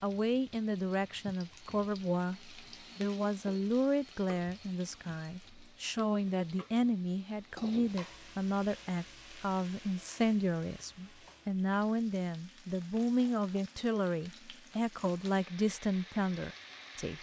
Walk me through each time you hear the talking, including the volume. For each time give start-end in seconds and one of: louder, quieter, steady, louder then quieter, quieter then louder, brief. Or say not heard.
0.0-17.1 steady.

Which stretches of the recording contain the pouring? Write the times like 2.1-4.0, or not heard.
not heard.